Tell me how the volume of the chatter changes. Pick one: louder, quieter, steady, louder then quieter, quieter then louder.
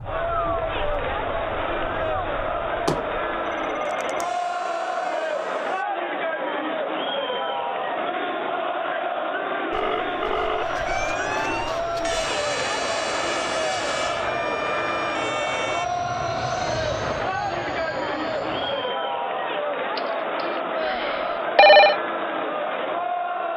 steady.